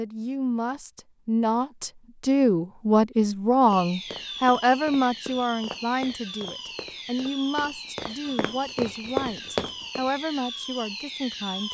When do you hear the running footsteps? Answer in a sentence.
You can hear the running footsteps from 3.7 to 10.1 s.